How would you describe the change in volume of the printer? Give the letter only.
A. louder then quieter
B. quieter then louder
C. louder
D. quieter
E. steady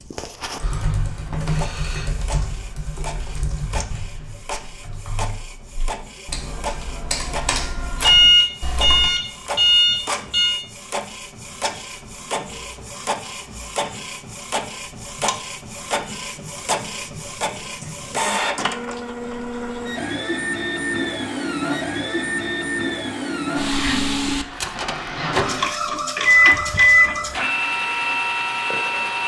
C.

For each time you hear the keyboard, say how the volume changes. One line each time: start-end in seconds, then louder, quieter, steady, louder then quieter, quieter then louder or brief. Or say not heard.
0.6-9.1 quieter then louder.